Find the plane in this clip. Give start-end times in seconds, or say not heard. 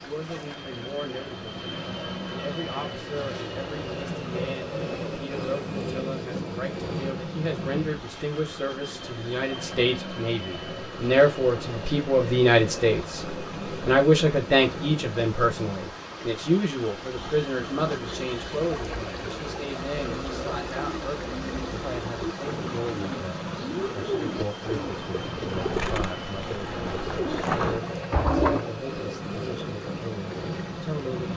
0.0-31.3.